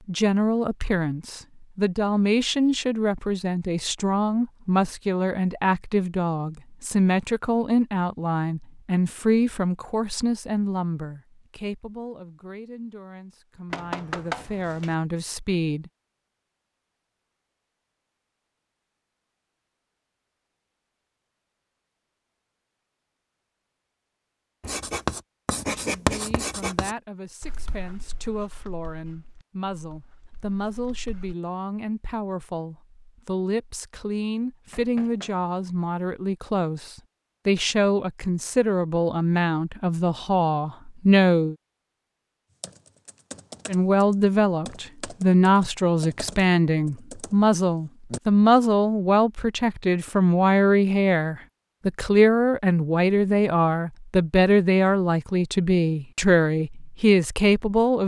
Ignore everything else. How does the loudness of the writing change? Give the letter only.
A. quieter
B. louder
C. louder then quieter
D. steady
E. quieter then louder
A.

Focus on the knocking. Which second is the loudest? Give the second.
14 s.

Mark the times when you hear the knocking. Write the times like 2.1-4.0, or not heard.
13.7-14.9, 34.7-35.5.